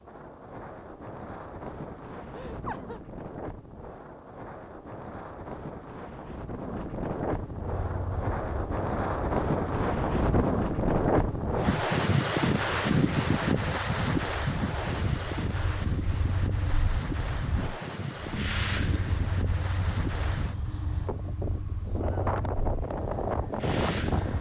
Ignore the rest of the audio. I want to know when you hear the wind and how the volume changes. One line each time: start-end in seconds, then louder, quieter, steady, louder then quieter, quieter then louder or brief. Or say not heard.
0.0-24.3 louder then quieter.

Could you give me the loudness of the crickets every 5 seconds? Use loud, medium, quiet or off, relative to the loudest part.
off, medium, medium, loud, loud.